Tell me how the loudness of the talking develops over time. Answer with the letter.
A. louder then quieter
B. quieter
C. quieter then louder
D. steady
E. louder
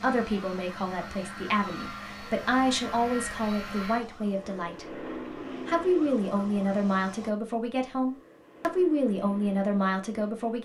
D.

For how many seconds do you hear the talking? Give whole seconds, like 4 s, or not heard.
10 s.